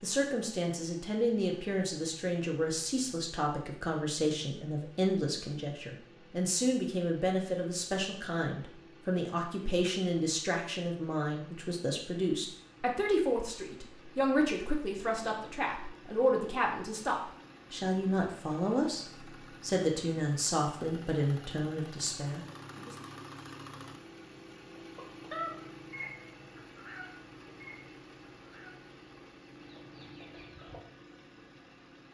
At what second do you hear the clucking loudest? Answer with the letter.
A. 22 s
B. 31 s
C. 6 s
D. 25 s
D.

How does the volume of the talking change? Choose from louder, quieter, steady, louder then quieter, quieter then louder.
steady.